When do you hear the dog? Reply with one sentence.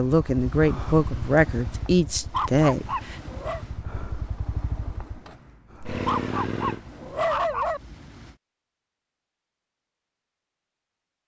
The dog can be heard from 2.1 to 3.6 s and from 5.8 to 7.8 s.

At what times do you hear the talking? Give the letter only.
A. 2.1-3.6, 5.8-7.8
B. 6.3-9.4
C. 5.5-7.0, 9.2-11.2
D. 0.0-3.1
D.